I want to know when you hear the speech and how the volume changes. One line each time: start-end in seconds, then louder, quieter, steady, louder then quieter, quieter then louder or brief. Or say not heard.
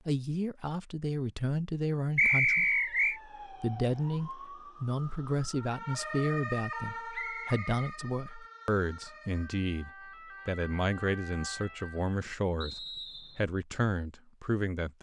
0.1-14.9 steady.